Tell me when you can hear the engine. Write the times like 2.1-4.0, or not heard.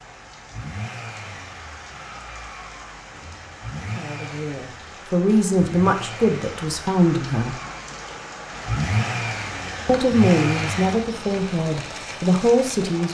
0.0-11.1.